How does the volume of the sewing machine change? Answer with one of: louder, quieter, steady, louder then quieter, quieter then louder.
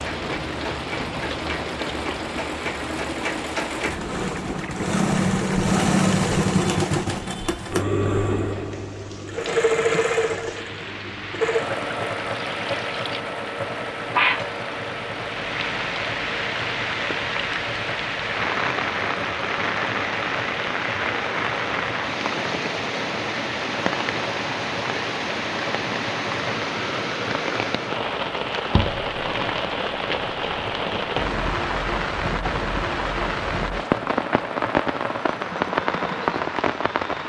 quieter.